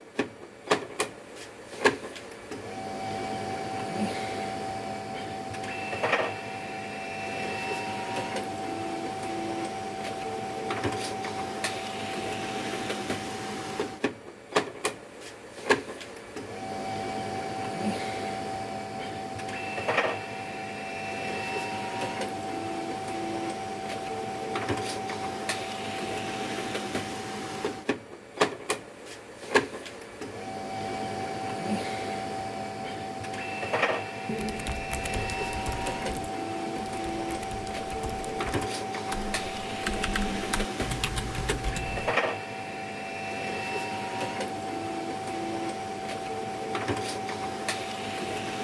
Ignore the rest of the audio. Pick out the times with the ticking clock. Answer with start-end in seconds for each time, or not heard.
not heard.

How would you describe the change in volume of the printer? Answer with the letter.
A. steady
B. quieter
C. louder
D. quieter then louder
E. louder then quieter
A.